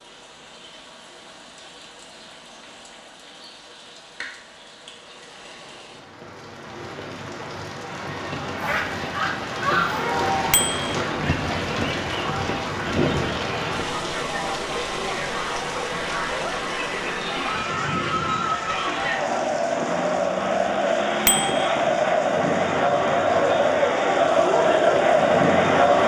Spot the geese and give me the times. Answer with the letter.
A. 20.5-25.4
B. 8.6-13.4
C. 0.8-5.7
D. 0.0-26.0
B.